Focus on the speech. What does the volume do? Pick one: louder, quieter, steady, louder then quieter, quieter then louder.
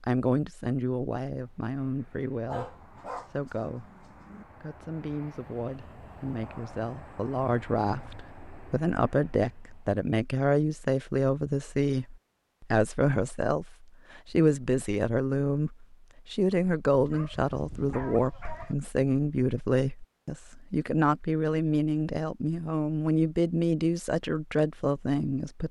louder.